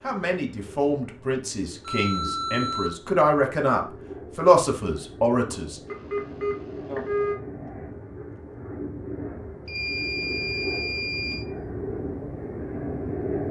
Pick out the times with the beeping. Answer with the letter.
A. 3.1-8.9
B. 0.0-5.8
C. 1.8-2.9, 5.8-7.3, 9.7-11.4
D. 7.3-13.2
C.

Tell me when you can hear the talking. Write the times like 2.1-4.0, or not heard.
0.0-5.8.